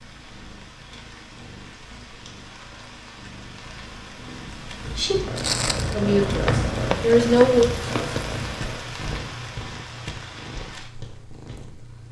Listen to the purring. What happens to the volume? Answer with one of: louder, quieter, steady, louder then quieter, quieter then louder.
louder then quieter.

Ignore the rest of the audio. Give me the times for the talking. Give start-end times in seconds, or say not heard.
5.9-8.2.